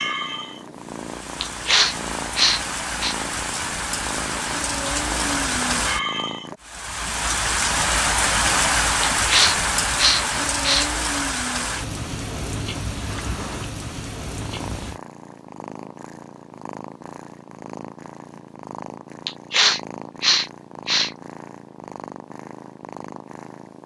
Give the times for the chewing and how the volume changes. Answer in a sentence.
You can't hear the chewing here.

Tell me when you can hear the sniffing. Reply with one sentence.
The sniffing can be heard from 1.4 to 3.1 s, from 9.2 to 10.9 s and from 19.2 to 21.1 s.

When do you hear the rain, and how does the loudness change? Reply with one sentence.
The rain can be heard from 0.0 to 15.0 s, getting louder then quieter.